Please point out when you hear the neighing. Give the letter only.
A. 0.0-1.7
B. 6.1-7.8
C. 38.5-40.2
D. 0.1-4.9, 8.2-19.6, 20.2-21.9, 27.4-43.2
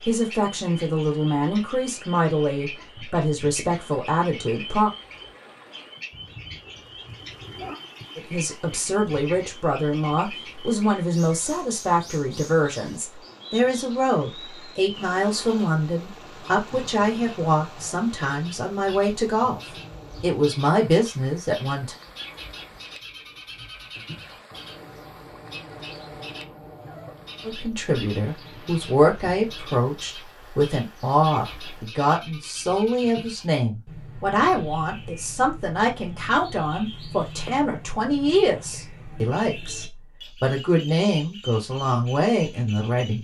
B.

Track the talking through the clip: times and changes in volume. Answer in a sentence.
The talking can be heard from 0.1 to 4.9 s, at a steady volume; from 8.2 to 19.6 s, at a steady volume; briefly from 20.2 to 21.9 s; and from 27.4 to 43.2 s, at a steady volume.